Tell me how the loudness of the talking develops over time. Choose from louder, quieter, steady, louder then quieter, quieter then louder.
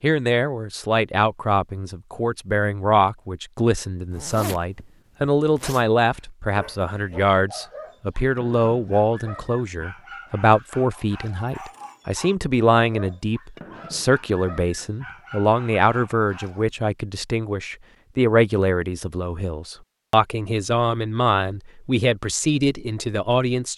steady.